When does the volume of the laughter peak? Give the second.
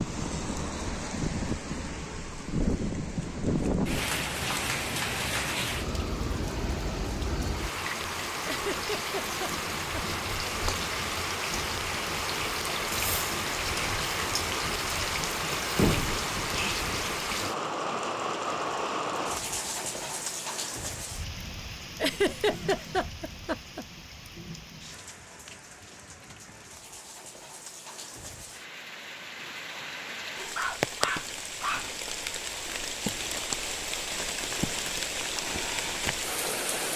22 s.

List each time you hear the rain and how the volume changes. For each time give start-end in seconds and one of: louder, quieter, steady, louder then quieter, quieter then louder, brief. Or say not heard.
0.0-36.9 quieter then louder.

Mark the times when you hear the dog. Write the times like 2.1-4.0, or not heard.
30.6-31.9.